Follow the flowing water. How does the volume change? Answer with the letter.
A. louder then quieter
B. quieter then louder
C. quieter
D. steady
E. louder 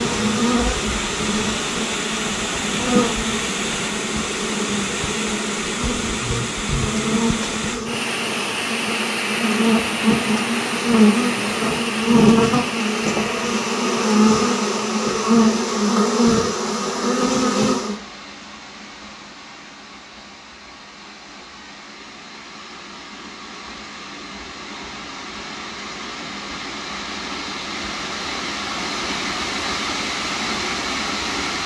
B.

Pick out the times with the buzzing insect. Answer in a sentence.
The buzzing insect can be heard from 0.0 to 18.0 s.